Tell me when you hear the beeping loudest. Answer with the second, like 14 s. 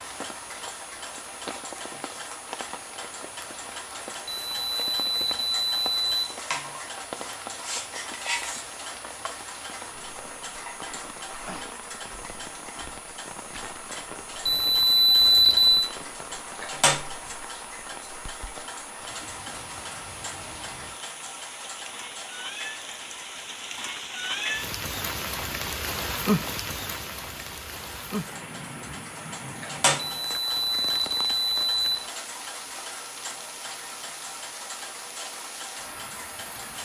15 s.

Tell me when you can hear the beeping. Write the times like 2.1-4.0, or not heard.
4.5-6.2, 14.4-15.9, 30.2-32.0.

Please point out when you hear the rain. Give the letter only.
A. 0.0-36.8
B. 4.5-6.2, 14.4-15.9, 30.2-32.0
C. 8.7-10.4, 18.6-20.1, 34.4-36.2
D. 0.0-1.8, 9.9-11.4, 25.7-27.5
A.